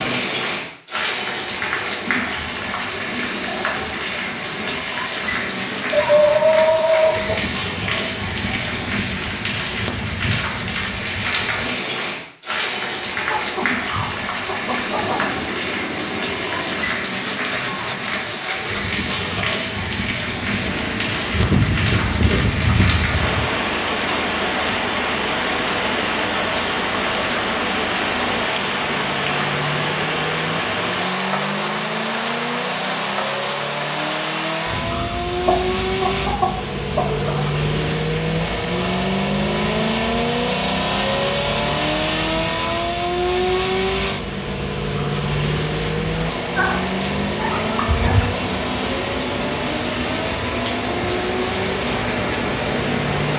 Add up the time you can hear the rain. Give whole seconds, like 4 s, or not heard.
53 s.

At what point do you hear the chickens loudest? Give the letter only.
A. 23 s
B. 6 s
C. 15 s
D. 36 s
B.